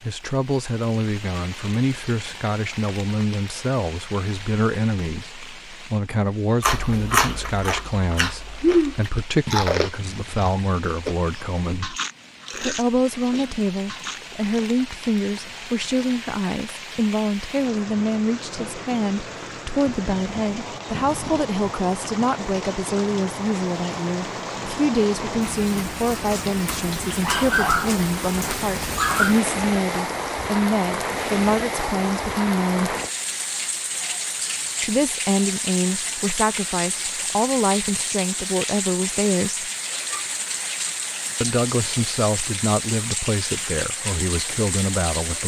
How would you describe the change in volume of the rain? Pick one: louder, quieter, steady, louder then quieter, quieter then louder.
louder.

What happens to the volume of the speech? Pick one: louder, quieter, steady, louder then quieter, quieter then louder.
steady.